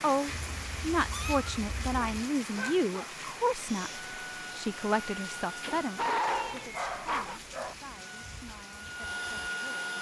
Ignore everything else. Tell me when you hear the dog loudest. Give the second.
6 s.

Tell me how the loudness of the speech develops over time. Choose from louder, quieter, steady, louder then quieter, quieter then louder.
quieter.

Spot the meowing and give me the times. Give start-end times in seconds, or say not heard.
0.2-2.2, 6.3-7.8.